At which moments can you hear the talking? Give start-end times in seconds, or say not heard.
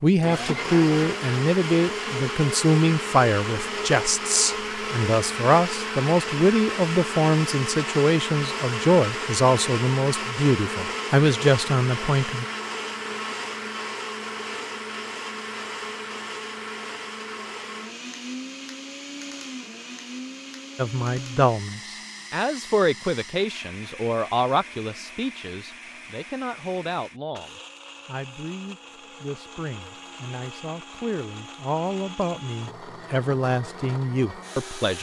0.0-12.4, 20.8-34.9.